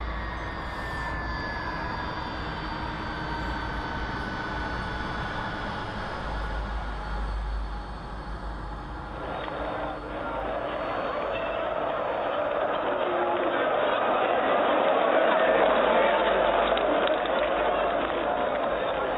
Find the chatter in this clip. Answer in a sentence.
The chatter can be heard from 9.1 to 19.1 s.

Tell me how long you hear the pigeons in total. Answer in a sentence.
The pigeons can't be heard in this clip.